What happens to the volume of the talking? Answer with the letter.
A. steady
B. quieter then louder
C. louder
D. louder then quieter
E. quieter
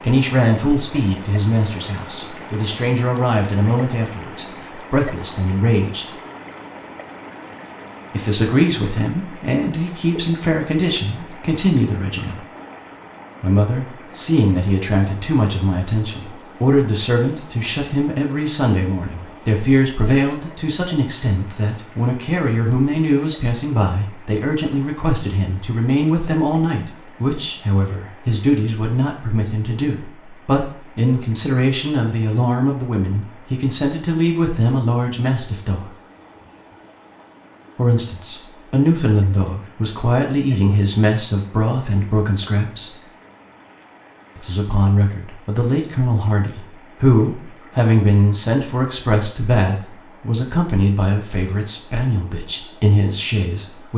A.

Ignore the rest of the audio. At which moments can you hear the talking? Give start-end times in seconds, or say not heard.
0.0-6.0, 8.1-12.4, 13.4-36.0, 37.8-43.0, 44.4-53.9.